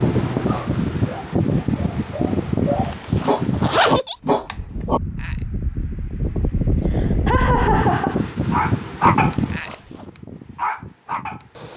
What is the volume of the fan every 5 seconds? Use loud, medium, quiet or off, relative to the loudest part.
loud, loud, quiet.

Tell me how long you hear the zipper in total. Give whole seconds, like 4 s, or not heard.
2 s.